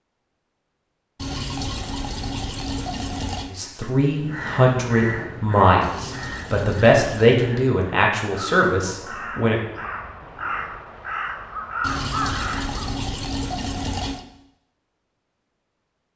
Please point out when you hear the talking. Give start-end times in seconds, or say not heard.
3.5-9.6.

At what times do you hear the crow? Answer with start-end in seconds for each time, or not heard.
4.0-12.9.